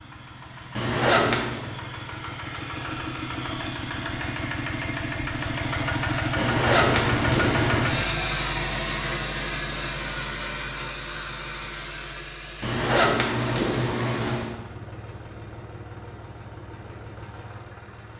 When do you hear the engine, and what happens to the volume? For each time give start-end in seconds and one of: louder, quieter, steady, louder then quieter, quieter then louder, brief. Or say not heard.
0.0-18.1 louder then quieter.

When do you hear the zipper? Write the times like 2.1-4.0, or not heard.
0.8-1.6, 6.3-7.9, 12.6-14.6.